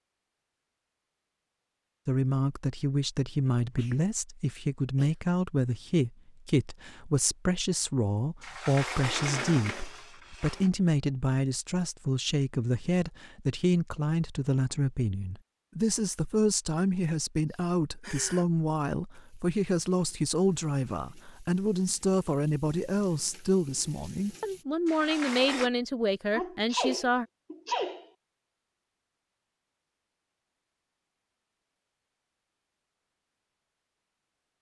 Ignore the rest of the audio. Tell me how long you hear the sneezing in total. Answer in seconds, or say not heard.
4 s.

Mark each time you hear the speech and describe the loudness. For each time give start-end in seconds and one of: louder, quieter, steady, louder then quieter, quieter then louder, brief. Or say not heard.
2.0-27.2 steady.